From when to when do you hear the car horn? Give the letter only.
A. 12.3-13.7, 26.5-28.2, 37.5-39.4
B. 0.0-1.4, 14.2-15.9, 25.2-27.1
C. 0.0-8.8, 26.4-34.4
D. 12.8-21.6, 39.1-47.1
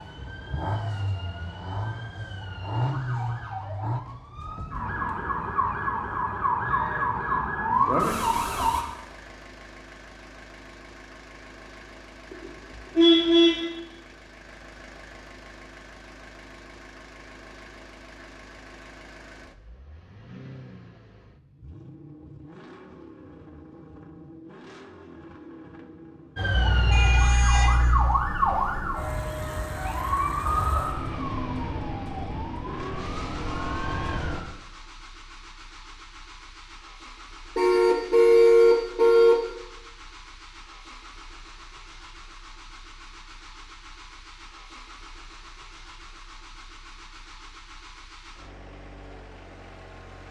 A.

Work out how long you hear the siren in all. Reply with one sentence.
The siren can be heard for 17 seconds in total.